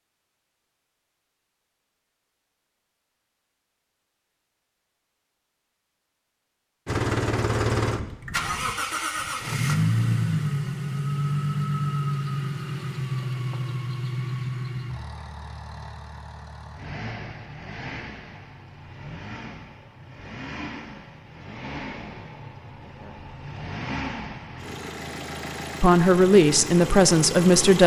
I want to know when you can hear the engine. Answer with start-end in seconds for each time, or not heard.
6.8-27.8.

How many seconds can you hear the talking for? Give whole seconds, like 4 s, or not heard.
2 s.